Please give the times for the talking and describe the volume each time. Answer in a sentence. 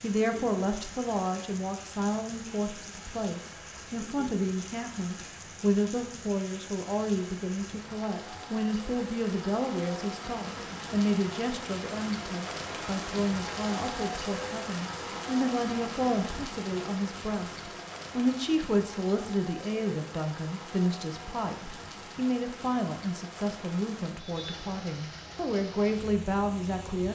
The talking can be heard from 0.0 to 27.1 s, at a steady volume.